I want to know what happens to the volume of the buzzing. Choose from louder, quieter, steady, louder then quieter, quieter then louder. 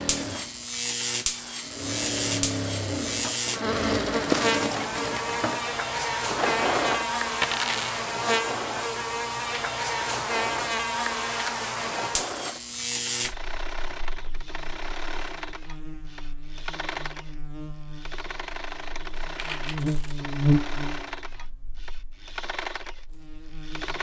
quieter then louder.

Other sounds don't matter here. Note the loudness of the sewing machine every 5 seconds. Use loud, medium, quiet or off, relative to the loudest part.
loud, loud, medium, medium, medium.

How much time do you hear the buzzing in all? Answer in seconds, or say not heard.
24 s.